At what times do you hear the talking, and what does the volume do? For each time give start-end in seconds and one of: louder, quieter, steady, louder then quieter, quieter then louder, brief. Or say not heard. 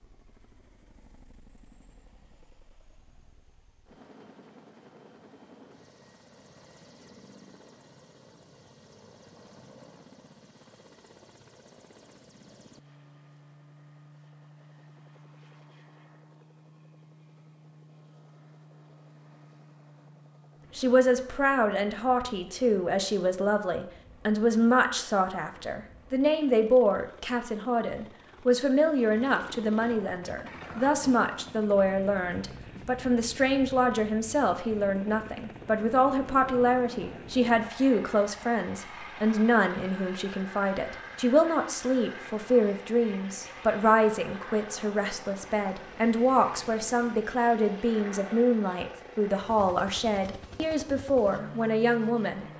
20.8-52.5 steady.